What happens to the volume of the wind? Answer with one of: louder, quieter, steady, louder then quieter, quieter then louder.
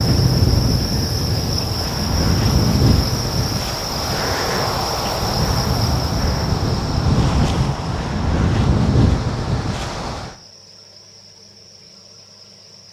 steady.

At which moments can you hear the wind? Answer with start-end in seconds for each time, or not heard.
0.0-10.3.